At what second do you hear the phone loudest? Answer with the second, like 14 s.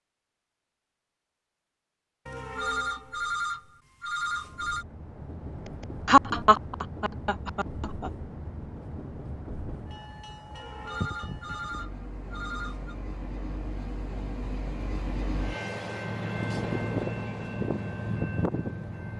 3 s.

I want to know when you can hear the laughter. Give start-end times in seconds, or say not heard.
6.0-8.1.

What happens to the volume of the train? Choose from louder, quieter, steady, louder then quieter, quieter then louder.
louder.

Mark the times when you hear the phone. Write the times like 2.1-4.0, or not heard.
2.2-4.8, 10.5-12.9.